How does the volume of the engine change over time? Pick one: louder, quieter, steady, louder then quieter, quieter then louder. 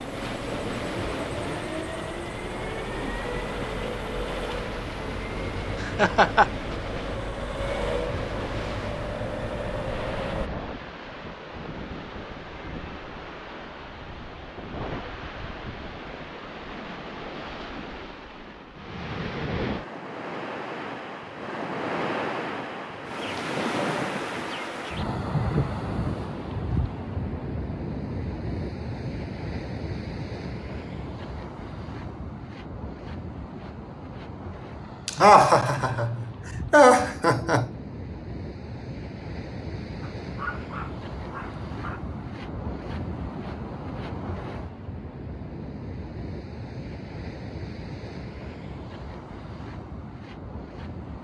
steady.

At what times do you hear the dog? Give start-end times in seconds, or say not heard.
40.2-42.0.